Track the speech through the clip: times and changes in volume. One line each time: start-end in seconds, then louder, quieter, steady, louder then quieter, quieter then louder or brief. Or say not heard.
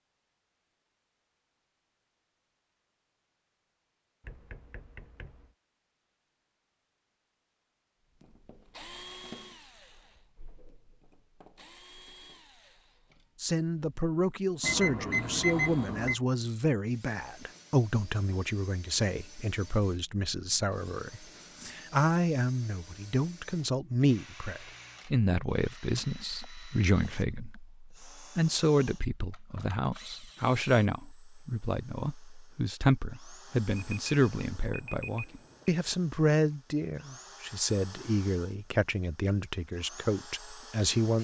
13.4-41.1 steady.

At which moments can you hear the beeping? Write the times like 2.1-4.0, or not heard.
4.2-5.5, 14.6-16.1, 33.8-35.8.